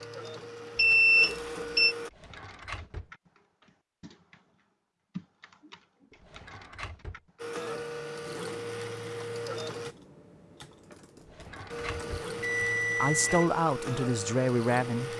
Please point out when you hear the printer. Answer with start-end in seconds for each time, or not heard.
0.0-2.1, 7.3-9.9, 11.7-15.1.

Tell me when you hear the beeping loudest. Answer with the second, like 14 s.
1 s.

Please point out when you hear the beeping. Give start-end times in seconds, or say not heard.
0.8-1.9, 12.2-13.5.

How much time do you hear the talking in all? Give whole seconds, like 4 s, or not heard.
2 s.